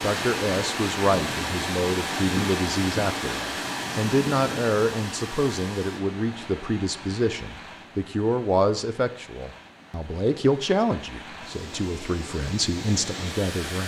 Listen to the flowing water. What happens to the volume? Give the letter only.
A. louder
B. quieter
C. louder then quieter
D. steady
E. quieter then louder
E.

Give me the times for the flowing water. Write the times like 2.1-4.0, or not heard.
0.0-13.8.